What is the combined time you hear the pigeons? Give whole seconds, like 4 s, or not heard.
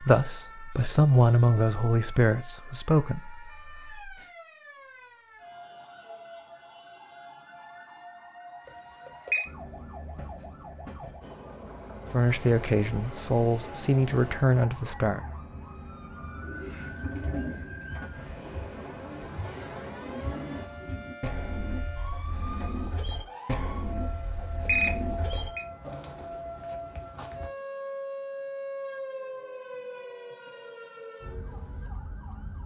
10 s.